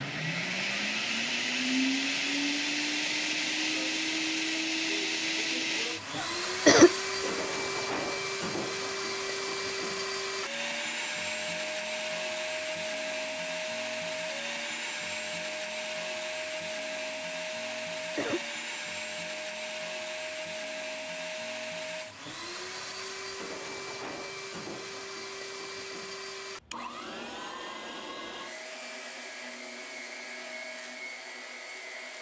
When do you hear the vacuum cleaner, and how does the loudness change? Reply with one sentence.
You can hear the vacuum cleaner from 0.0 to 32.1 s, getting quieter.